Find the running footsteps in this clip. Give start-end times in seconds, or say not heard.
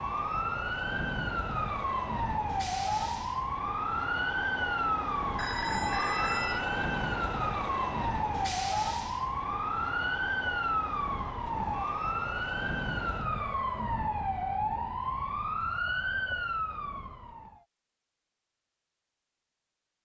not heard.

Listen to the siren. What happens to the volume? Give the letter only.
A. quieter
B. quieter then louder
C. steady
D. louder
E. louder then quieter
C.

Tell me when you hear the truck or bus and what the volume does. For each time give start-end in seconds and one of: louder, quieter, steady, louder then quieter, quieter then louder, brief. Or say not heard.
0.0-13.3 louder then quieter.